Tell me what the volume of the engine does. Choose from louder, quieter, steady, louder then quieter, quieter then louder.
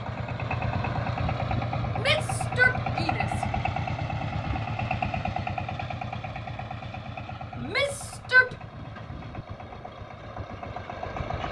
quieter.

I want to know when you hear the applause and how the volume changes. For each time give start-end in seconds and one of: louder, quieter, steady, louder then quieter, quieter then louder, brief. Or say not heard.
not heard.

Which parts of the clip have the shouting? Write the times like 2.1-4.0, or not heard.
1.9-3.5, 7.5-8.6.